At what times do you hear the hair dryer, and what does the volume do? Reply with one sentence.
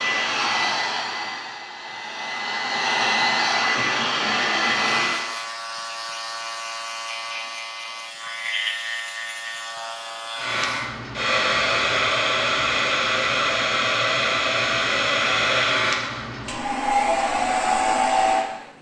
The hair dryer can be heard from 0.0 to 5.3 s, getting quieter then louder; and from 10.3 to 18.7 s, at a steady volume.